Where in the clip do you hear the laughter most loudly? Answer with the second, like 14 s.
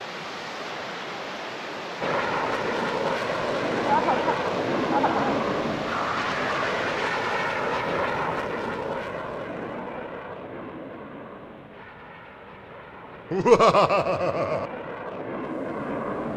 14 s.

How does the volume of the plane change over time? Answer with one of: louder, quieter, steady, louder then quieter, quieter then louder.
quieter then louder.